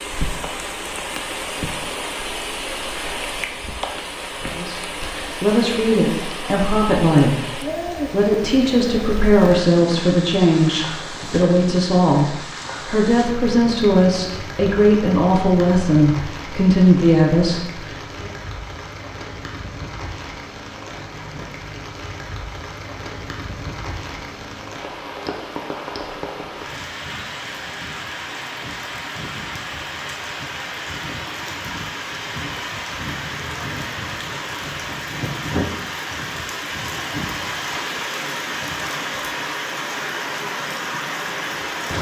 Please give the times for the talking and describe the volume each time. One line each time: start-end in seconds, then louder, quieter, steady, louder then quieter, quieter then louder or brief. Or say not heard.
4.5-18.3 steady.